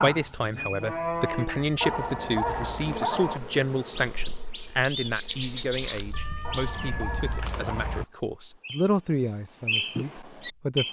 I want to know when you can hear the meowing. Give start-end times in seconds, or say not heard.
1.6-2.9, 6.1-8.1.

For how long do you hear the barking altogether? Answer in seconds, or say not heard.
3 s.